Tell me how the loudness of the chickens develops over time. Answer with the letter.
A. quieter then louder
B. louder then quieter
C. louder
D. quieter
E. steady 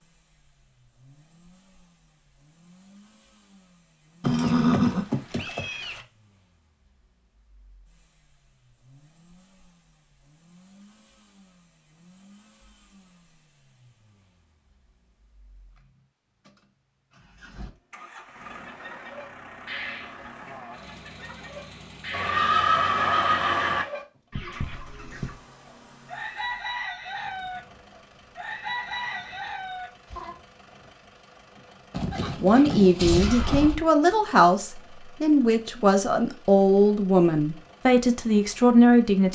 C.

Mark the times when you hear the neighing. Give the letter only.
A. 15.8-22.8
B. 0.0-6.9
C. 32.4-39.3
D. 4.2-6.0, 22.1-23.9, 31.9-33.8
D.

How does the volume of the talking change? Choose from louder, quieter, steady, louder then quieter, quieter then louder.
steady.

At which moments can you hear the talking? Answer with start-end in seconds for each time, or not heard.
32.4-39.3.